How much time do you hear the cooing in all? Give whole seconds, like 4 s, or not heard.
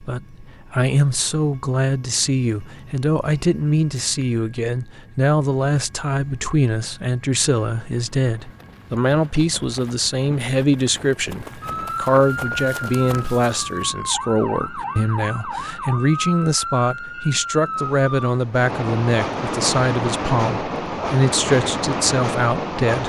not heard.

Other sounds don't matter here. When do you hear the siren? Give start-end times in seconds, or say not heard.
11.6-18.4.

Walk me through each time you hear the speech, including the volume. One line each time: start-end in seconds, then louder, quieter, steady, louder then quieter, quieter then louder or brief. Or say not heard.
0.0-23.0 steady.